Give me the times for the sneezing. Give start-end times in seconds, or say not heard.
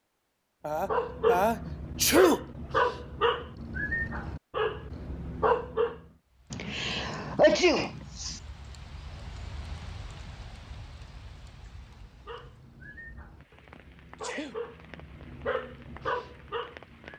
0.7-2.4, 6.5-8.4, 13.8-14.8.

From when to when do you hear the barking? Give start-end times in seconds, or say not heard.
0.8-6.0, 11.9-17.1.